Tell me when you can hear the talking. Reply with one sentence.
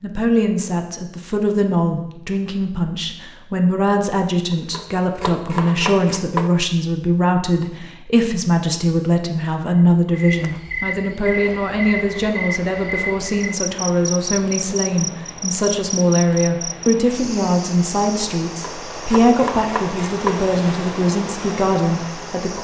You can hear the talking from 0.0 to 22.5 s.